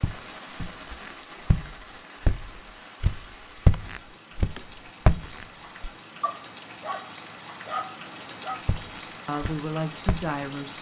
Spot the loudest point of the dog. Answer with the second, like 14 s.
8 s.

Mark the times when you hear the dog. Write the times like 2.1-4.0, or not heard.
6.2-8.6.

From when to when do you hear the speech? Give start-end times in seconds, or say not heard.
9.2-10.7.